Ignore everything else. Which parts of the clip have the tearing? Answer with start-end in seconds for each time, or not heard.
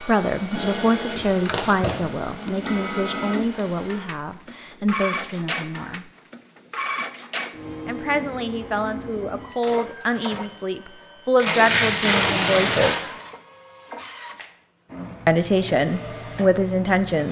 0.6-2.0, 11.3-13.0.